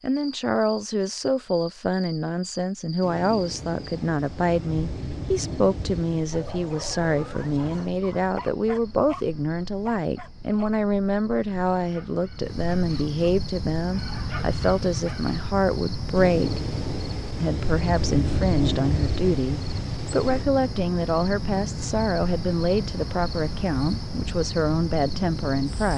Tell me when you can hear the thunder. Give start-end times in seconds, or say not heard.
3.0-8.0, 16.1-20.4.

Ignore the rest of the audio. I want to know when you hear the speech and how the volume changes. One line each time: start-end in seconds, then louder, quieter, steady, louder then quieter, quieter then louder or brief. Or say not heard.
0.0-16.6 steady
17.4-25.9 steady.